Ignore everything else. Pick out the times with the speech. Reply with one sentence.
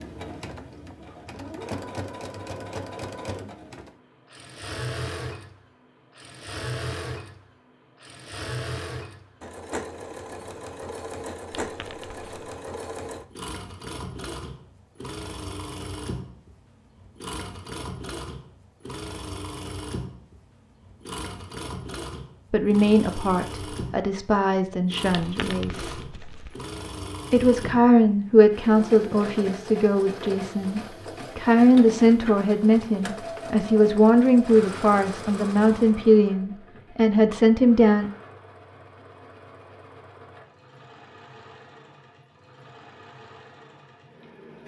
You can hear the speech from 22.5 to 25.9 s and from 27.3 to 38.1 s.